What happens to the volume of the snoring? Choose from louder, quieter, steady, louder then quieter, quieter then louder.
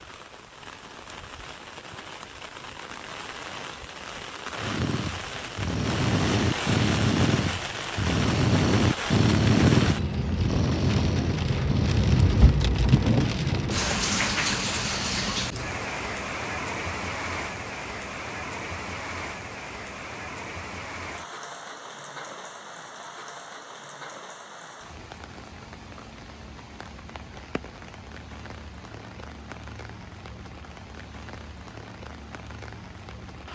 louder then quieter.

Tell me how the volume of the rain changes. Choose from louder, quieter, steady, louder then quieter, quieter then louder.
louder then quieter.